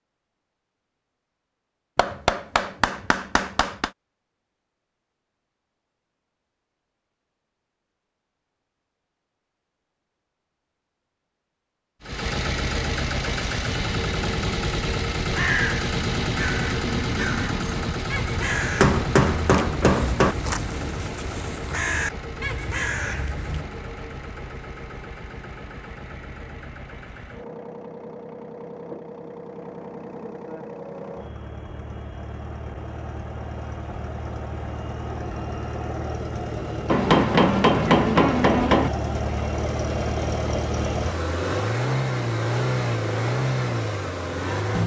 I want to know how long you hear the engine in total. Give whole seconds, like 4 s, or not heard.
33 s.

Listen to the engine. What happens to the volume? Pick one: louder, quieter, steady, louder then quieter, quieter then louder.
quieter then louder.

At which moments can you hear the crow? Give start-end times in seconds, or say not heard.
15.2-23.6.